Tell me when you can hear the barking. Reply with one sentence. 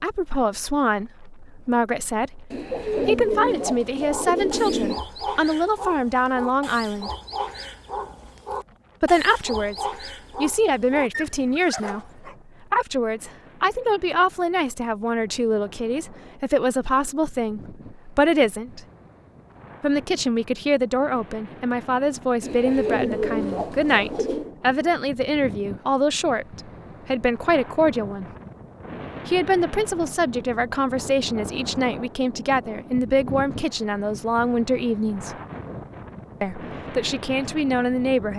The barking can be heard from 4.0 to 12.3 s.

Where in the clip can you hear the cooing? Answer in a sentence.
The cooing can be heard from 2.5 to 5.0 s and from 22.4 to 24.5 s.